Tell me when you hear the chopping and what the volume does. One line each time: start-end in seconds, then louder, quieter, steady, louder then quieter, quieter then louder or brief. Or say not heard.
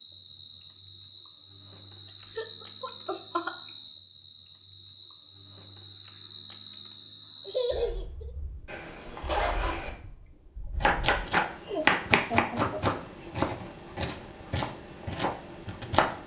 10.8-16.2 quieter.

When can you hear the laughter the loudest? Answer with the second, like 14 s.
8 s.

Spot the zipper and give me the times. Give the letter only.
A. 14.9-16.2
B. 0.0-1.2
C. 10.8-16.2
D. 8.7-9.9
D.